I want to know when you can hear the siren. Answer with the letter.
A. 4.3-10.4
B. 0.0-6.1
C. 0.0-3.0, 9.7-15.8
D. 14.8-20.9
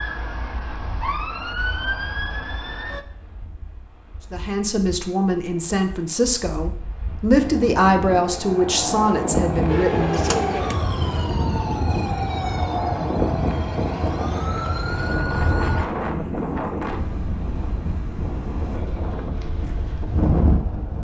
C.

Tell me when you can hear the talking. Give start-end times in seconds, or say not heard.
4.3-10.4.